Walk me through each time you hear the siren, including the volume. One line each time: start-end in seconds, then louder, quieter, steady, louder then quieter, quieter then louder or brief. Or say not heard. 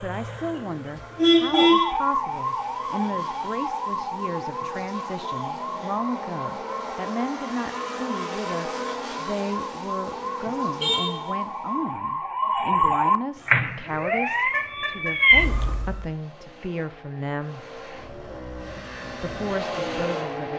0.0-16.1 quieter then louder.